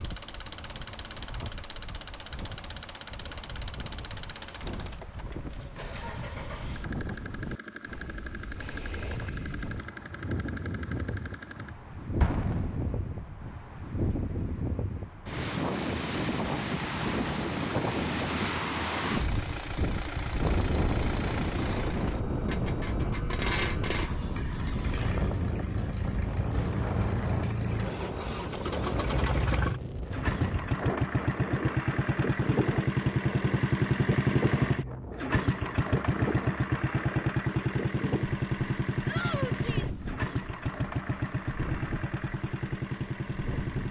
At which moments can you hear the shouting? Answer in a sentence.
The shouting can be heard from 39.0 to 40.0 s.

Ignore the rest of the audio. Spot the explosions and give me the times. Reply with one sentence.
You can hear the explosions from 12.2 to 13.5 s.